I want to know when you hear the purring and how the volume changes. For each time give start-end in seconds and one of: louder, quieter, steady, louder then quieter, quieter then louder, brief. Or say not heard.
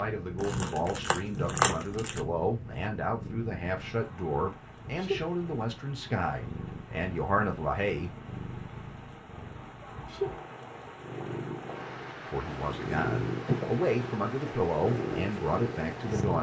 0.0-16.3 louder.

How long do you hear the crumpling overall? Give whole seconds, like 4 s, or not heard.
2 s.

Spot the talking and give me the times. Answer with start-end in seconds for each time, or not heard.
0.0-8.2, 12.3-16.3.